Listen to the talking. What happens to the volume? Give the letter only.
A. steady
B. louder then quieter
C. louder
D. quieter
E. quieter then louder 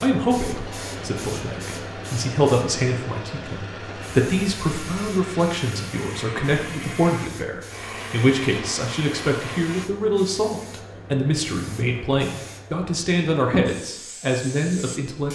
A.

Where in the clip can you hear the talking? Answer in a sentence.
The talking can be heard from 0.0 to 15.3 s.